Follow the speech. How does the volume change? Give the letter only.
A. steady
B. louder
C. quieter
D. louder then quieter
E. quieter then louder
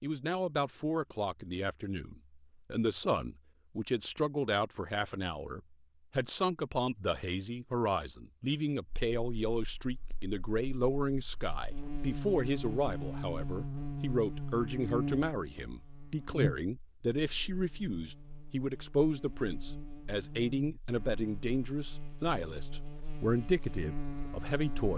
A.